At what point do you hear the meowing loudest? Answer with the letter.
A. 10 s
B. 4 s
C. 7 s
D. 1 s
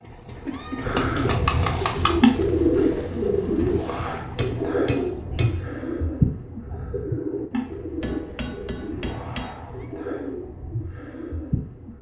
D.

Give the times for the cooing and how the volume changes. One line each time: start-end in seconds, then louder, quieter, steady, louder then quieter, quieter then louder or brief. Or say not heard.
0.8-11.9 quieter.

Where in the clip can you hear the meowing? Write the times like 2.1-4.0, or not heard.
0.3-1.0, 9.0-9.9.